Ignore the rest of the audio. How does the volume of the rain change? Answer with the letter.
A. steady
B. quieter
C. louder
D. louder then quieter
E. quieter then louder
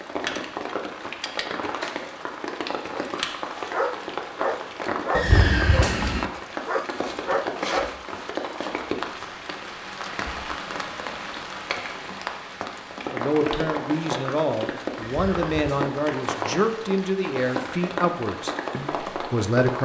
A.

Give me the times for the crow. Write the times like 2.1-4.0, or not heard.
not heard.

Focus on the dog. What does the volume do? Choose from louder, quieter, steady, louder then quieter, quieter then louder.
quieter then louder.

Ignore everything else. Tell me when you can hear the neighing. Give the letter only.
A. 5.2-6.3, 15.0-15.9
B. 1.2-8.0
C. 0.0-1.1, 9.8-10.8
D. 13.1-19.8
A.